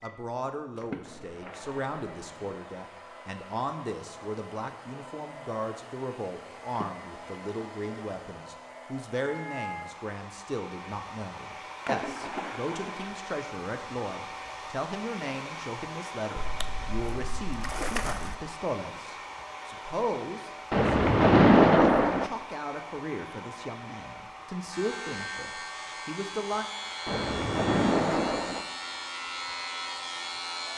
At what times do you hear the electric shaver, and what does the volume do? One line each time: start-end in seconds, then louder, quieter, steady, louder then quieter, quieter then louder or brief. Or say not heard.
24.7-30.7 steady.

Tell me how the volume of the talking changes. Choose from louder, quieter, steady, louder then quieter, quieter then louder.
steady.